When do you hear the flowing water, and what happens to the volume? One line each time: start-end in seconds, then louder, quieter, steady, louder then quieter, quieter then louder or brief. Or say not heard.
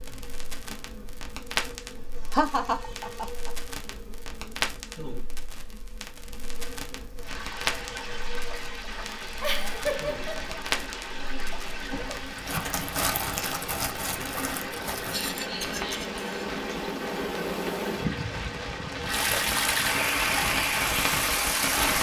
7.2-21.9 louder.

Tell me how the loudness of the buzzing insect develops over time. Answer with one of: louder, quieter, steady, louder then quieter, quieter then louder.
louder.